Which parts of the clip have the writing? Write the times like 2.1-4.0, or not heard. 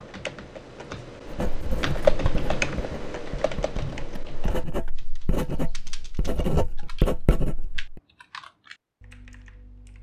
1.2-8.0.